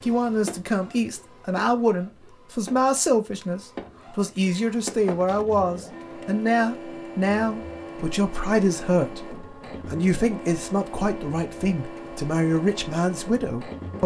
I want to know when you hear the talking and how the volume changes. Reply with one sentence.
You can hear the talking from 0.0 to 14.0 s, at a steady volume.